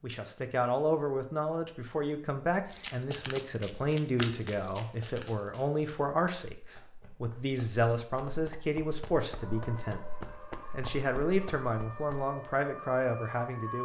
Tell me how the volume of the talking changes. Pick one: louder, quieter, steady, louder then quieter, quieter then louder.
steady.